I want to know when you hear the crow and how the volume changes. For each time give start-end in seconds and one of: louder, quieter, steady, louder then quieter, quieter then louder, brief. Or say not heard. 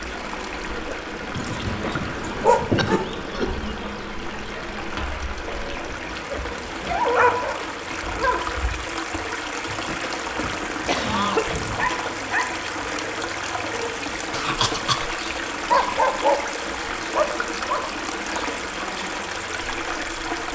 not heard.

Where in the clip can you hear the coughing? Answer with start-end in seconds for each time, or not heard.
2.8-3.5, 9.8-11.6, 14.3-15.2.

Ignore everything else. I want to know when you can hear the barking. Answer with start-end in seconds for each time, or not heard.
1.4-3.0, 5.9-8.4, 10.7-12.4, 15.7-17.9.